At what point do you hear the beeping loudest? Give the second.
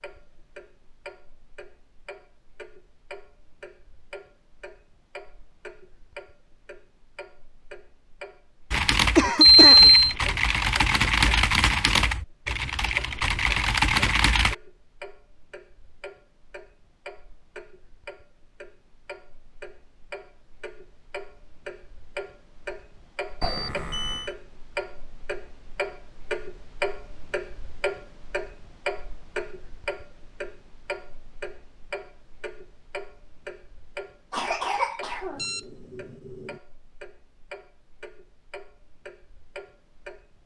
10 s.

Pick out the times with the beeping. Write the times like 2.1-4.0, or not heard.
9.4-10.2, 23.4-24.3, 35.4-36.5.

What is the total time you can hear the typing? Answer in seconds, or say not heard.
6 s.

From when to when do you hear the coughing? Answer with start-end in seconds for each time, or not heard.
9.2-9.9, 34.3-35.5.